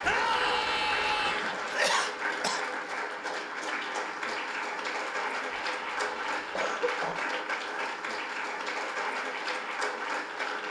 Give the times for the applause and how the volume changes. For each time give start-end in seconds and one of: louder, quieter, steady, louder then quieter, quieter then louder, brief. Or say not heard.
0.0-10.6 steady.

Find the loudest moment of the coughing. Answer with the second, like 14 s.
2 s.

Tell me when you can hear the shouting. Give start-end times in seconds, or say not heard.
0.0-1.4, 5.5-6.3.